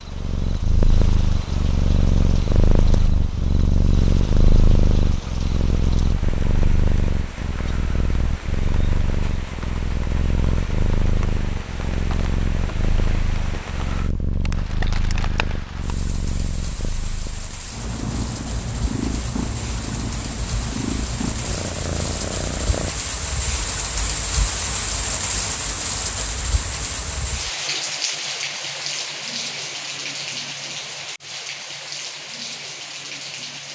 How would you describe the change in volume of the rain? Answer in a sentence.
The loudness of the rain goes up.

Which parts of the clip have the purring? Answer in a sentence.
The purring can be heard from 0.0 to 22.9 s.